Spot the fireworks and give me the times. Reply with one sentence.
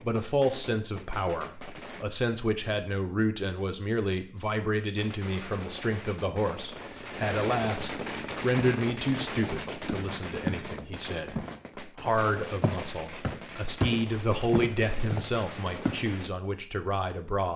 You can hear the fireworks from 0.0 to 2.0 s and from 5.0 to 16.3 s.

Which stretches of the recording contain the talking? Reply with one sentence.
The talking can be heard from 0.0 to 17.5 s.